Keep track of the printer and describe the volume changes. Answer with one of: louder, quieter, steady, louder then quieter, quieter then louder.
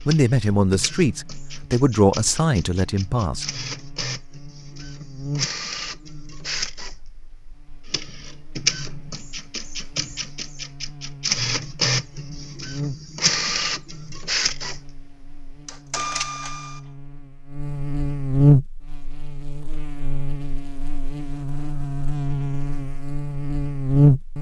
louder.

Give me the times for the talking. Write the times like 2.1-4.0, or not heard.
0.1-3.5.